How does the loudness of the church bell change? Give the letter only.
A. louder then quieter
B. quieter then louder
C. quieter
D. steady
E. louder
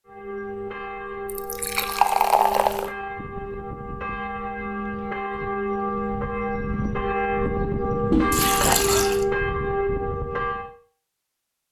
E.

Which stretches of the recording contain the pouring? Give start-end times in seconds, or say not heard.
1.2-2.9, 8.1-9.2.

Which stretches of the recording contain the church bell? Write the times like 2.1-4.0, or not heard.
0.1-10.8.